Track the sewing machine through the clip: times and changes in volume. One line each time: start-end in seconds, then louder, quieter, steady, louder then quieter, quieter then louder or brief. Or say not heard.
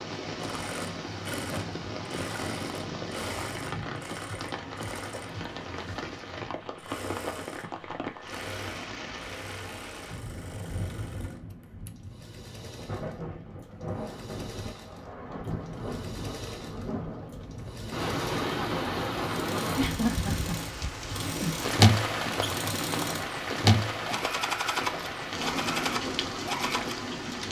0.0-27.1 quieter then louder.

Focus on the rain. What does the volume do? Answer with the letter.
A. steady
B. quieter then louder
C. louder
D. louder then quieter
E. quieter
C.